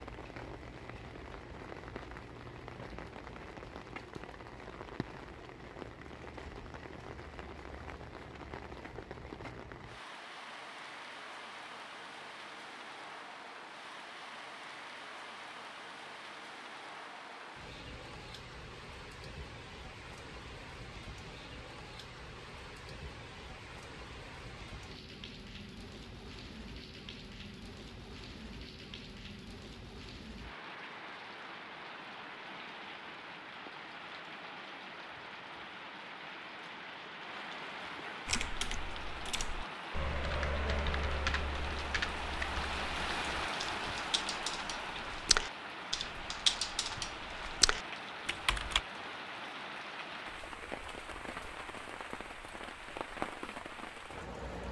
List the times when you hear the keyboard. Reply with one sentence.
The keyboard can be heard from 38.2 to 48.8 s.